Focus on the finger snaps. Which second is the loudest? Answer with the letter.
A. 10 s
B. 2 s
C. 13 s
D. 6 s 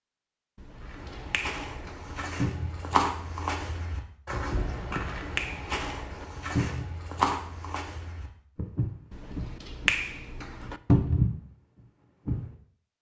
A.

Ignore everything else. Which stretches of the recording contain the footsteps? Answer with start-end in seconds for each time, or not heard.
0.8-12.5.